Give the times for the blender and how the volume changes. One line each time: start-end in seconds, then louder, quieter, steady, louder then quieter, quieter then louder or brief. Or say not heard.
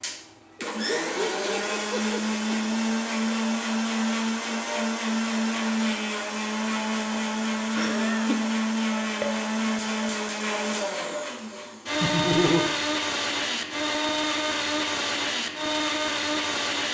0.0-16.8 steady.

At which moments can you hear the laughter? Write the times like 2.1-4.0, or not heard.
0.6-2.4, 7.8-8.4, 12.0-12.7.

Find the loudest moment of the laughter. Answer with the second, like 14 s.
12 s.